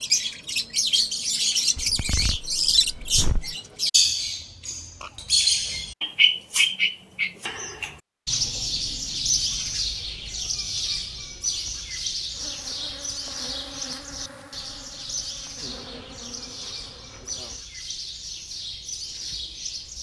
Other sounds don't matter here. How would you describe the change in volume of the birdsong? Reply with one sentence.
The loudness of the birdsong goes down.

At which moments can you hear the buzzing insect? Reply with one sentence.
The buzzing insect can be heard from 12.3 to 17.6 s.